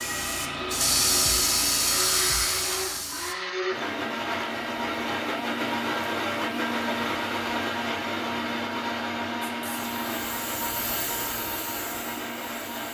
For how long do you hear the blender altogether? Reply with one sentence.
The blender can be heard for 13 seconds in total.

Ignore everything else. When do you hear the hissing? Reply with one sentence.
You can hear the hissing from 0.0 to 3.4 s and from 9.6 to 12.8 s.